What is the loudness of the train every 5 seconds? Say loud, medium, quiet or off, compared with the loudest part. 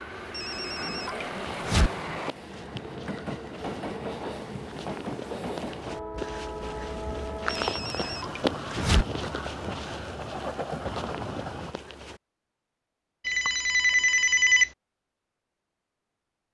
loud, loud, loud, off.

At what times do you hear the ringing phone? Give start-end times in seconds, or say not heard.
0.3-1.9, 7.5-9.1, 13.2-14.7.